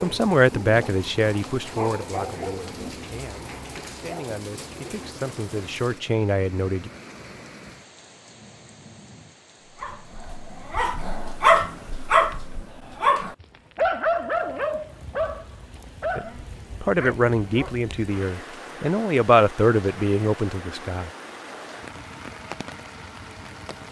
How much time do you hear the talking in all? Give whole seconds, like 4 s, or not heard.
12 s.